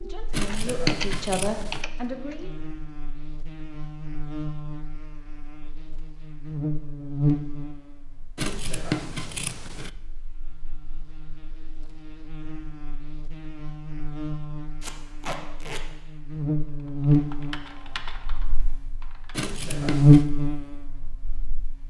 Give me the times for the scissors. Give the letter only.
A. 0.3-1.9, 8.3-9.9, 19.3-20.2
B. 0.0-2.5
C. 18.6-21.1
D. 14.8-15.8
A.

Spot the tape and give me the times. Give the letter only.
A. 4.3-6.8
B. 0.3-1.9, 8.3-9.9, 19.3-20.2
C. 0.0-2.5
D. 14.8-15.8
D.